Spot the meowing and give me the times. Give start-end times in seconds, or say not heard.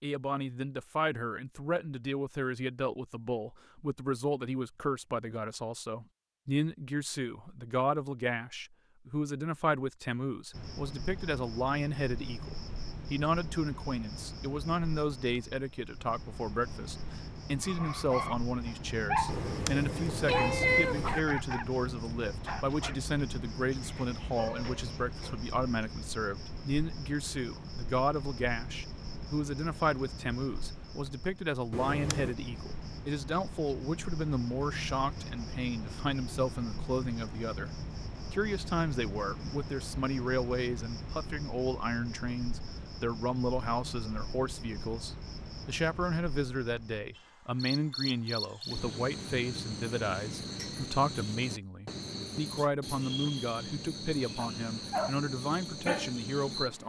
19.2-21.2, 31.7-32.4.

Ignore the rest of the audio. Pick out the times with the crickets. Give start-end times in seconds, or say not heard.
10.5-56.8.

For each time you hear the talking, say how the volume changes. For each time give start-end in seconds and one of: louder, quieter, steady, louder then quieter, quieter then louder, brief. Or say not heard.
0.0-56.8 steady.